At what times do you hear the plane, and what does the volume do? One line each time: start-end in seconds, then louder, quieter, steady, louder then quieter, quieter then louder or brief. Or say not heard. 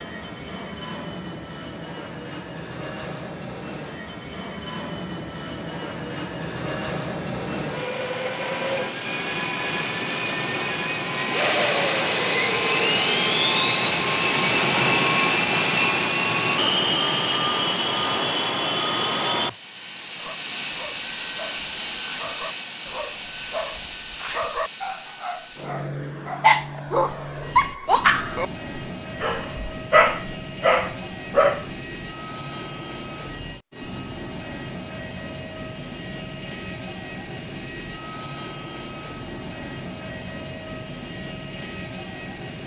0.0-42.6 louder then quieter.